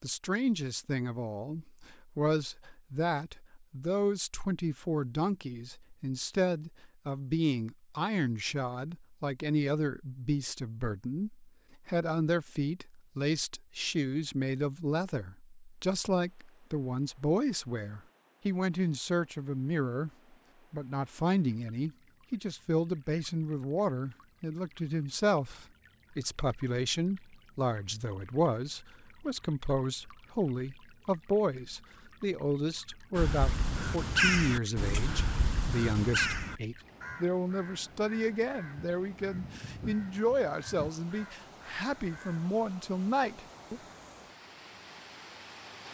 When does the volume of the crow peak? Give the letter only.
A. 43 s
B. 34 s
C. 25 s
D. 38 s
B.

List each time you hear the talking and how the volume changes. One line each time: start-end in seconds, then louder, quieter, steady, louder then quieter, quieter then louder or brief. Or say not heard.
0.0-20.1 steady
20.7-43.8 steady.